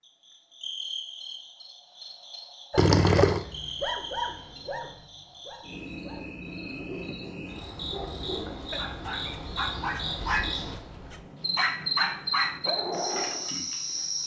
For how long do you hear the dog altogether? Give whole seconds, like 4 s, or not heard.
11 s.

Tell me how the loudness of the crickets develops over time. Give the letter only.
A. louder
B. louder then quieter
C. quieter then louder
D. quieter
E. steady
A.